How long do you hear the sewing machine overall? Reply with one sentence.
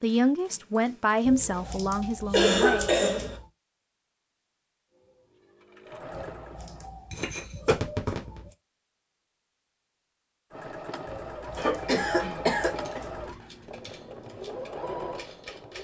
You can hear the sewing machine for 7 seconds altogether.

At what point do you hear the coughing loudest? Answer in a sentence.
The loudest moment of the coughing is at 3 seconds.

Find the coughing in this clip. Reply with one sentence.
The coughing can be heard from 2.3 to 3.4 s, from 7.1 to 8.4 s and from 11.6 to 13.0 s.